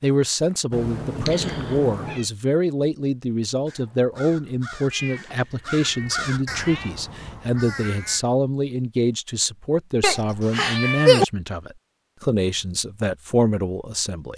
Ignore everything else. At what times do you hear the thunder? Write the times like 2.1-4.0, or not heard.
not heard.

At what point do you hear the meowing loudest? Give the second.
11 s.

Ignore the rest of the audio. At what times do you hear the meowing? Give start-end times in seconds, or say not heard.
0.7-2.2, 4.9-6.9, 10.0-11.2.